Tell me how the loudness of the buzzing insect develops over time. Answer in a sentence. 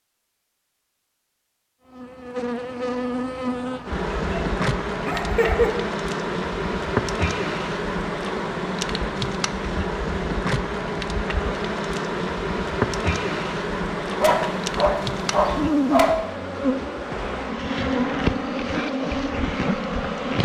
The volume of the buzzing insect stays about the same.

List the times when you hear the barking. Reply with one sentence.
You can hear the barking from 4.2 to 5.7 s and from 14.2 to 16.1 s.